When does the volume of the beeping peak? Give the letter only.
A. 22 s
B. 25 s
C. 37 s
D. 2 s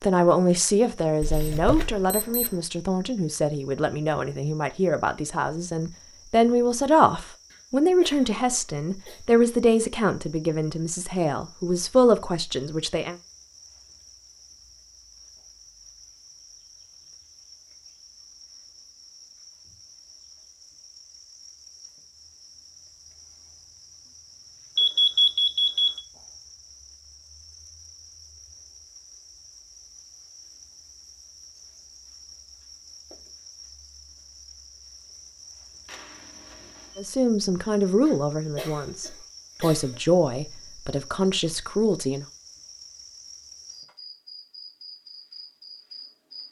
B.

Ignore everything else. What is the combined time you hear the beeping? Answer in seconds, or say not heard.
4 s.